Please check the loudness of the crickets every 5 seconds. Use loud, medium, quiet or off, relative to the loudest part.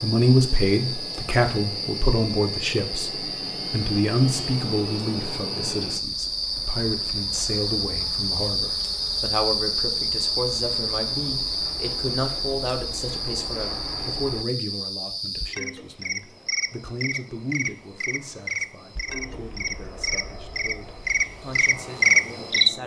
medium, medium, medium, medium, loud.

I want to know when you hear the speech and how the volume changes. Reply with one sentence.
You can hear the speech from 0.0 to 22.8 s, getting quieter.